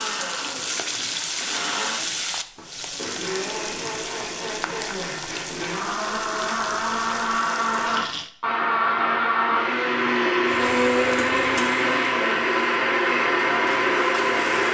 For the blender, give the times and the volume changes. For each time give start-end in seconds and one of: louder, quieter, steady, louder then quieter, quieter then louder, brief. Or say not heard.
0.0-14.7 louder.